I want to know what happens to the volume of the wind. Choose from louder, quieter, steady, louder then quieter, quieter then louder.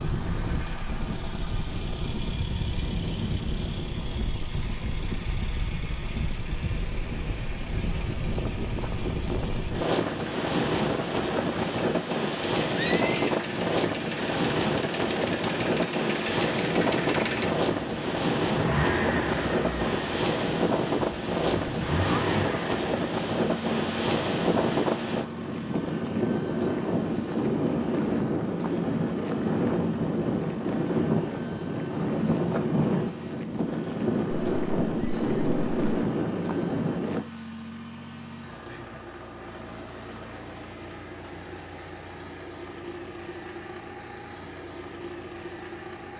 louder.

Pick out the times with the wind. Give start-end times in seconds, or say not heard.
0.0-37.2.